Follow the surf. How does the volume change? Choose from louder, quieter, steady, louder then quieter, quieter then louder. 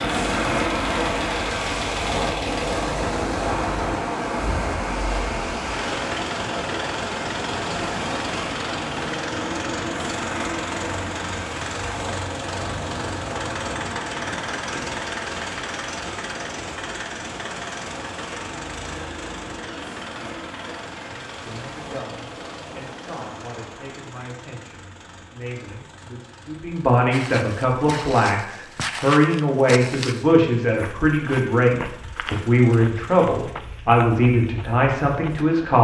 quieter.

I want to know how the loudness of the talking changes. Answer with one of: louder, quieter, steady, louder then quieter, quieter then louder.
louder.